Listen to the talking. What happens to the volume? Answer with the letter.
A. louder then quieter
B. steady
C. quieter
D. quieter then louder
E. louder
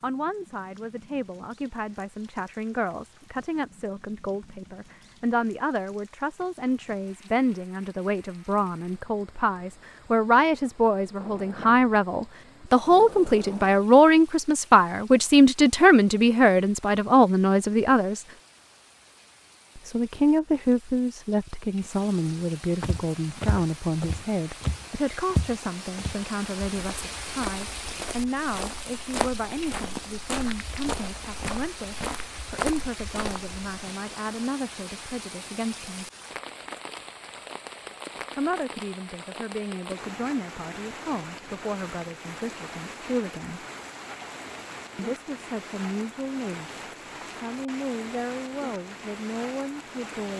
A.